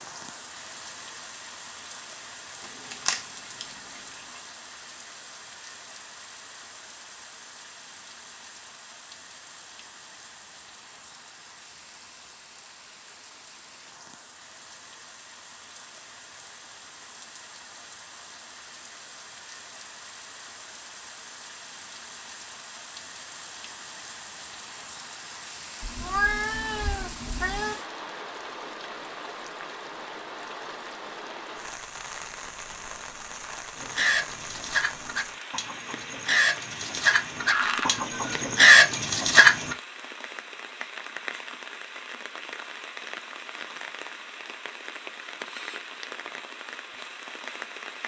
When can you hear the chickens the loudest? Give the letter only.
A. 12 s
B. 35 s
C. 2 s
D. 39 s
D.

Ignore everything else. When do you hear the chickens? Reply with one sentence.
You can hear the chickens from 33.8 to 39.8 s.